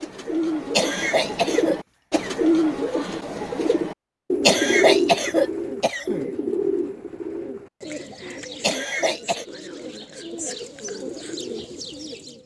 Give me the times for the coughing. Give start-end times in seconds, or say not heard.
0.7-2.3, 4.5-6.2, 8.6-9.4.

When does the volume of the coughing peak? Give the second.
5 s.